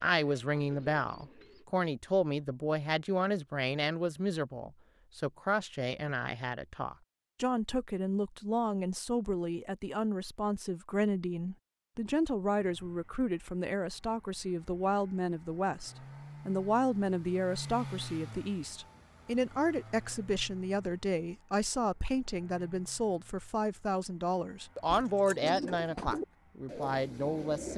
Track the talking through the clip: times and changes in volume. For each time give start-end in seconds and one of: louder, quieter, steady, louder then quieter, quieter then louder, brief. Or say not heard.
0.0-27.7 steady.